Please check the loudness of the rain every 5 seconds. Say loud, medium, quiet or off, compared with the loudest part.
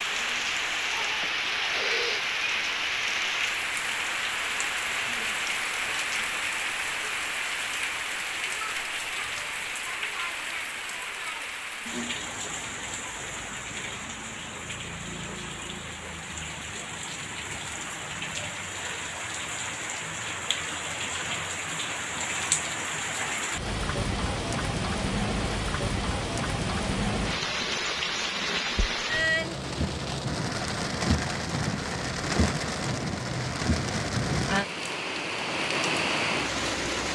loud, loud, medium, medium, loud, loud, loud, loud.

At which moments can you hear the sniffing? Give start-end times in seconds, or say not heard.
1.2-2.2.